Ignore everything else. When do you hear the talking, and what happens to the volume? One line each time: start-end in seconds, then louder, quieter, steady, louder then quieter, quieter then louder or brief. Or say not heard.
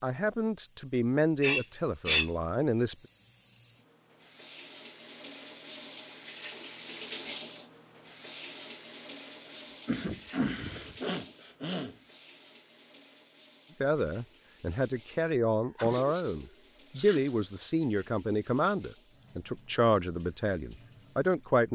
0.0-3.0 brief
13.8-21.6 steady.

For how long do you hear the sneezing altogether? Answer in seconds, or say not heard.
5 s.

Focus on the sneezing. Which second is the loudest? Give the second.
2 s.